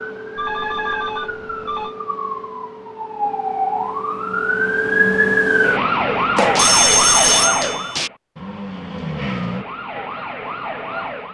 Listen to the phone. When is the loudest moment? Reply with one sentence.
The volume of the phone peaks at 7 seconds.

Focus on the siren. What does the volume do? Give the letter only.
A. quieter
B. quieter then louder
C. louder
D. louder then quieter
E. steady
D.